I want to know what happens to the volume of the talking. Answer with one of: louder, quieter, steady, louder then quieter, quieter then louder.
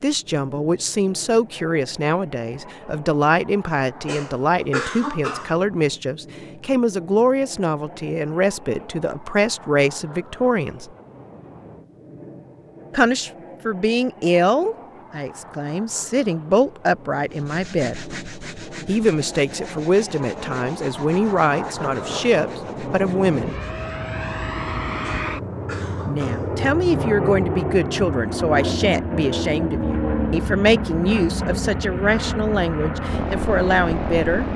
steady.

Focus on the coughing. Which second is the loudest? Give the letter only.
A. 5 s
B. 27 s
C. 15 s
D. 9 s
A.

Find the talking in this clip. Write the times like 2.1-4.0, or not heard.
0.0-10.9, 12.9-18.0, 18.9-23.6, 26.1-34.5.